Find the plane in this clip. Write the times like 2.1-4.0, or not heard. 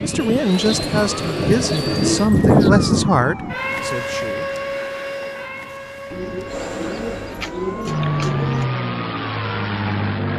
0.0-2.3, 6.5-10.3.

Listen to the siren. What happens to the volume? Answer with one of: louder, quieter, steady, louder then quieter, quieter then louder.
louder then quieter.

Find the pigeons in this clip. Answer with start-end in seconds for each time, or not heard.
0.4-2.8, 6.1-8.7.